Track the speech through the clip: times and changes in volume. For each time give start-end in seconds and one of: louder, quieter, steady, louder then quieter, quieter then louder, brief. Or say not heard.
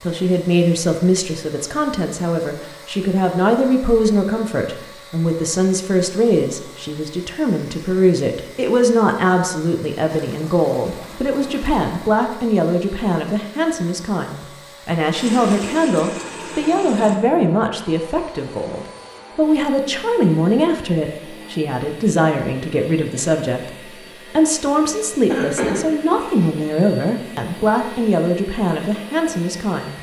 0.0-29.9 steady.